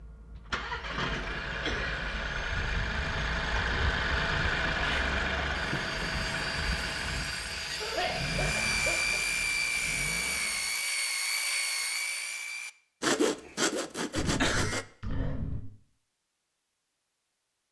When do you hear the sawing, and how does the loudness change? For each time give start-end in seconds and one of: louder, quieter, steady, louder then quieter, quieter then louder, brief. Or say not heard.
4.8-14.8 louder.